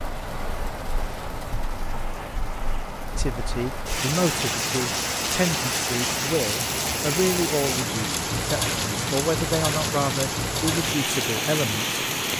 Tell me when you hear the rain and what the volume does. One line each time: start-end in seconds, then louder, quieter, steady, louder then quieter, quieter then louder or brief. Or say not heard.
0.0-12.3 louder.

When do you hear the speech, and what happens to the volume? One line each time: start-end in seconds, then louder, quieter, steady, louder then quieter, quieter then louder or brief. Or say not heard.
3.1-11.9 steady.